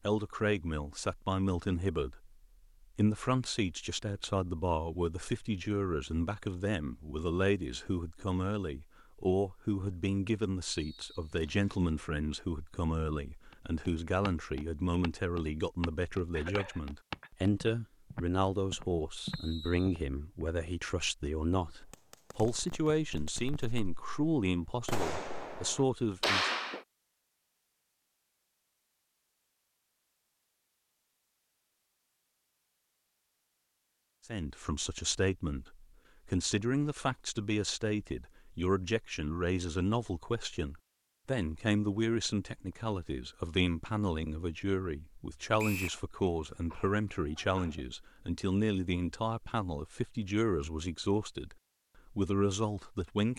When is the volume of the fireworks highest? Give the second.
26 s.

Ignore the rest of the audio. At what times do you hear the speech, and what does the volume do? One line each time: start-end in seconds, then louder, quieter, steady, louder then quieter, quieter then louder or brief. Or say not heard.
0.1-2.3 brief
3.0-26.5 steady
34.2-53.3 steady.